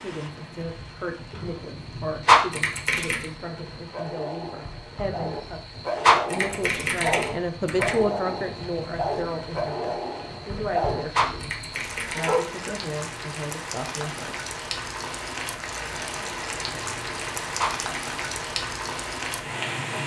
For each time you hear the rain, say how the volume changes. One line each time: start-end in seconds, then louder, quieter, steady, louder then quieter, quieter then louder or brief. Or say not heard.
0.0-20.0 louder.